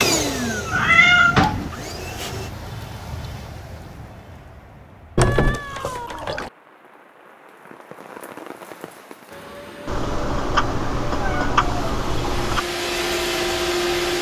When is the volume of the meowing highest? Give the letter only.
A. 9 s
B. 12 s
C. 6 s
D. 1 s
D.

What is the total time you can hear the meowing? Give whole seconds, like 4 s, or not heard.
5 s.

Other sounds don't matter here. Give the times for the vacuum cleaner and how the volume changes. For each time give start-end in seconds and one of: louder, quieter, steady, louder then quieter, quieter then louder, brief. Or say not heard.
0.0-2.5 brief
9.3-14.1 louder.